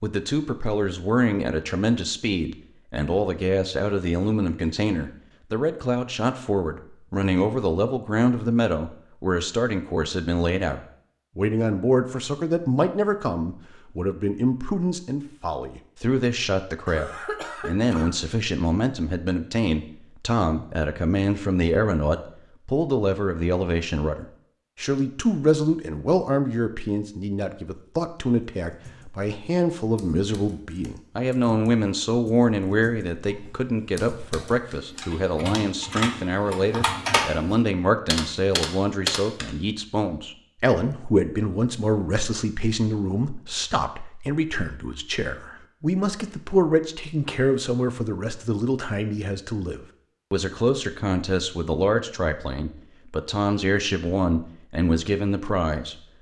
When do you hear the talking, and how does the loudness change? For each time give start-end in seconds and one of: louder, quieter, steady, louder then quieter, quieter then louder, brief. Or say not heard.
0.0-56.0 steady.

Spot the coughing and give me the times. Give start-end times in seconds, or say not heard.
16.9-18.1.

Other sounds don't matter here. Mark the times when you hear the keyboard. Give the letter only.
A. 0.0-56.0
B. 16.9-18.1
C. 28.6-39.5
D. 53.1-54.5
C.